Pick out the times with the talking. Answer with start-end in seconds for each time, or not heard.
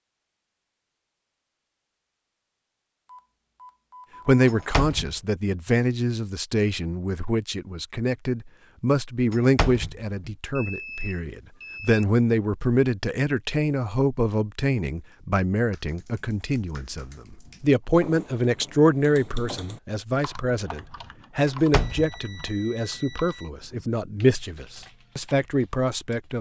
4.2-26.3.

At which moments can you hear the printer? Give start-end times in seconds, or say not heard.
not heard.